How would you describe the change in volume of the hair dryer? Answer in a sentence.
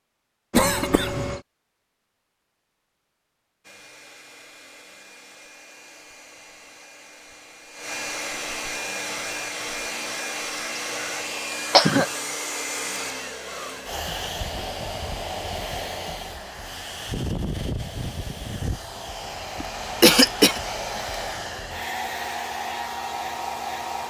The loudness of the hair dryer goes up.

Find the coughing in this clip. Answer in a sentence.
You can hear the coughing from 0.5 to 1.4 s, from 10.9 to 12.1 s and from 19.6 to 20.6 s.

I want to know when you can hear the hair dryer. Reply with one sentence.
The hair dryer can be heard from 3.6 to 24.0 s.